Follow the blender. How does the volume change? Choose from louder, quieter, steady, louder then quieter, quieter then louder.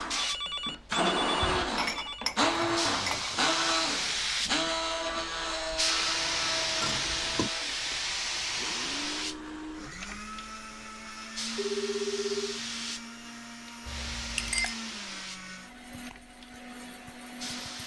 quieter.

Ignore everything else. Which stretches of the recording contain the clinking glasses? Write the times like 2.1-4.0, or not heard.
1.4-3.4, 6.8-7.5, 13.8-14.8.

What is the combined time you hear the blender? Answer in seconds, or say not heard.
18 s.